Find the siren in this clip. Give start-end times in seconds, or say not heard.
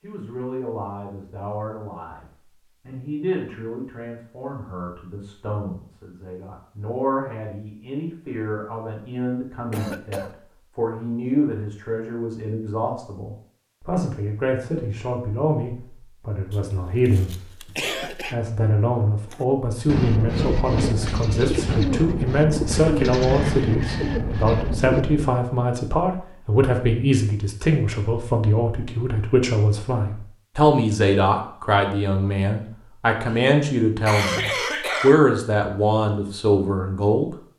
not heard.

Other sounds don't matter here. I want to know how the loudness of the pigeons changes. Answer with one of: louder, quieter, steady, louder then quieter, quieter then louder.
steady.